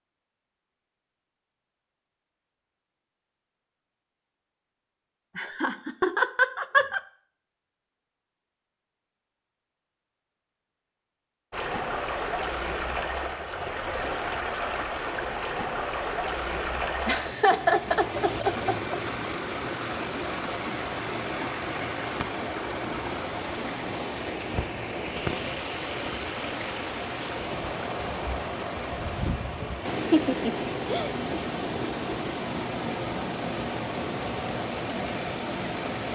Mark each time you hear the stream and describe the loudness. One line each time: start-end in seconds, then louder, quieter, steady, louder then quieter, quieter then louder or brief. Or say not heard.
11.5-36.1 steady.